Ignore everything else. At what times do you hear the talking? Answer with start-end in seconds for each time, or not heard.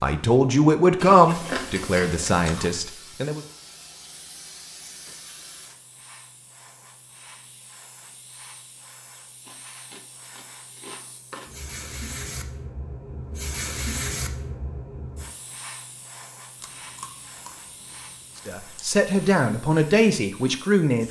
0.0-3.4, 18.4-21.0.